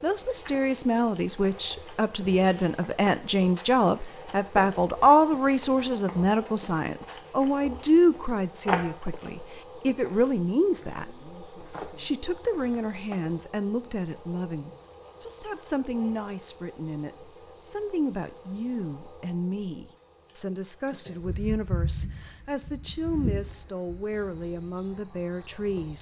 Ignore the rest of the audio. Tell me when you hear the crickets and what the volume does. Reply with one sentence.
You can hear the crickets from 0.0 to 25.9 s, getting quieter.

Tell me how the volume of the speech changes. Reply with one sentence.
The volume of the speech goes down.